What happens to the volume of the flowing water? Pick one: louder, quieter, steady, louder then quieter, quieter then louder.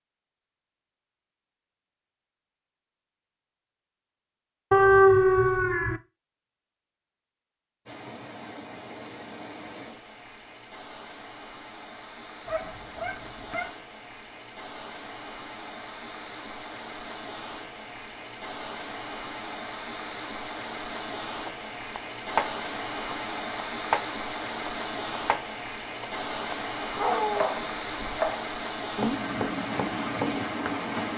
louder.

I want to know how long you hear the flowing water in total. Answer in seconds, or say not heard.
23 s.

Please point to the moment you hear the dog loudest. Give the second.
5 s.